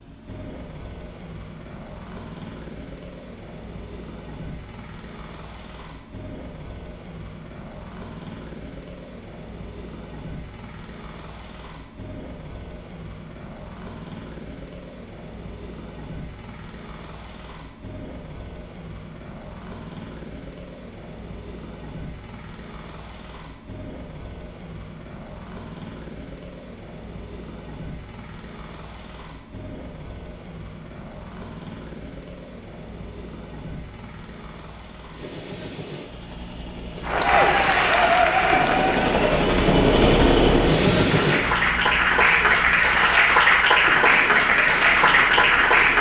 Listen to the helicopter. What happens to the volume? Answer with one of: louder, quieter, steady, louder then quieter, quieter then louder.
louder.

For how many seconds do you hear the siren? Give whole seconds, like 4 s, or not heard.
not heard.